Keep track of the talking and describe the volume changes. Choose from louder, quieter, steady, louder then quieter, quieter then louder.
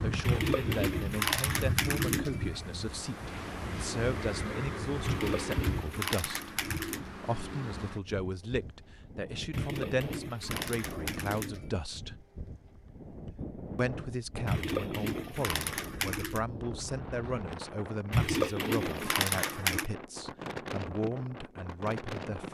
steady.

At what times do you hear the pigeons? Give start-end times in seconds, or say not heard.
0.2-2.6, 5.0-7.1, 9.5-11.8, 14.4-16.4, 18.1-19.9.